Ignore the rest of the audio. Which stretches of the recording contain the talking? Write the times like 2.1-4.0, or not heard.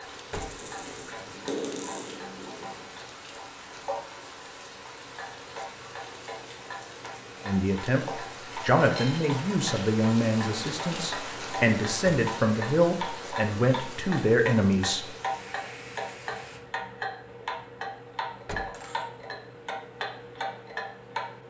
7.5-15.1.